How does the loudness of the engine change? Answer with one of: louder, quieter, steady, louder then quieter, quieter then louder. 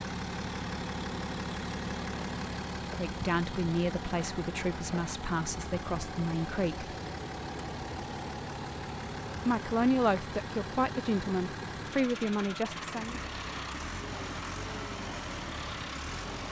steady.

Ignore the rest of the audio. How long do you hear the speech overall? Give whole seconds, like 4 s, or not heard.
8 s.